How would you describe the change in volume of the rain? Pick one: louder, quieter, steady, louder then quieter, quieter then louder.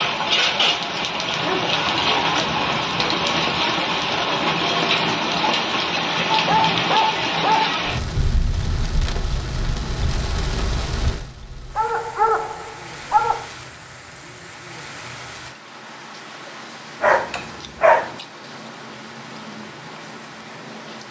quieter.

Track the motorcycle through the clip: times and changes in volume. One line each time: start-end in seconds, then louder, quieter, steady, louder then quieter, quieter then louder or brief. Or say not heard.
not heard.